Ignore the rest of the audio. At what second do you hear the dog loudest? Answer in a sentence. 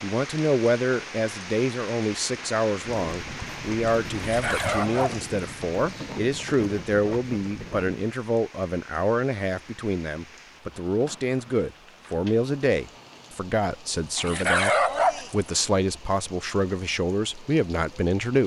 The volume of the dog peaks at 15 seconds.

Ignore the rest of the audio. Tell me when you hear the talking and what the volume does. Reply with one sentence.
The talking can be heard from 0.0 to 18.4 s, at a steady volume.